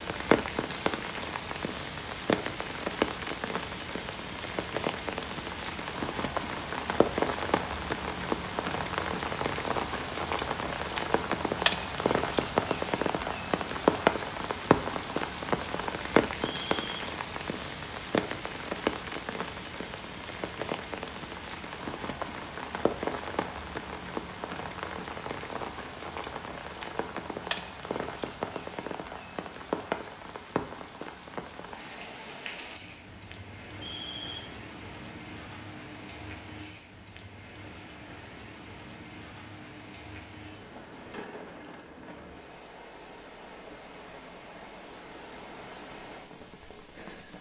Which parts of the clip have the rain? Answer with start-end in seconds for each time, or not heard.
0.0-47.3.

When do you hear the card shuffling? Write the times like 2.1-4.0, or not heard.
not heard.